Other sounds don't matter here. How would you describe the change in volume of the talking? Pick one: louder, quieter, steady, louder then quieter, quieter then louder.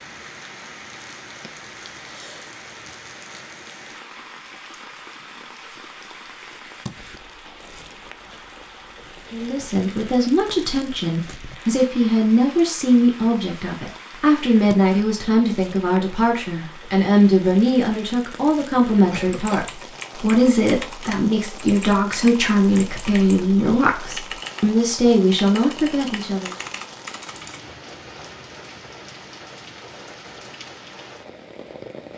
steady.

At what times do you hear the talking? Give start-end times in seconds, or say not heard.
9.3-26.5.